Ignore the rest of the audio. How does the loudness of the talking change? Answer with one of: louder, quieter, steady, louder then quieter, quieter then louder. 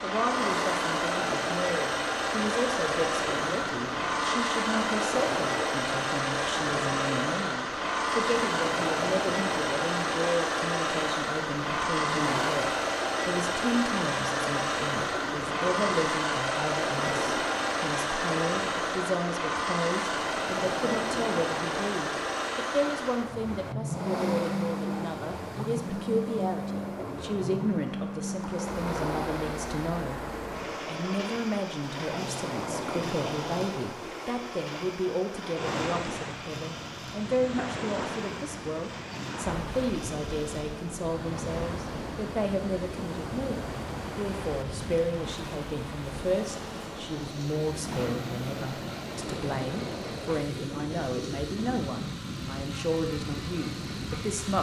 steady.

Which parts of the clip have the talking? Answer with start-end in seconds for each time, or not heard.
0.0-54.5.